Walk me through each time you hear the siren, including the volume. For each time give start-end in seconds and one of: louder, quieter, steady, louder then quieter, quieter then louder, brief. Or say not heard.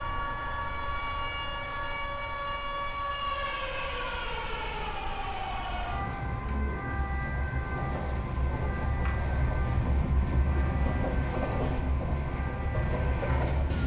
0.0-13.8 quieter.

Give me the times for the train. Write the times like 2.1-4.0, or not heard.
0.0-13.8.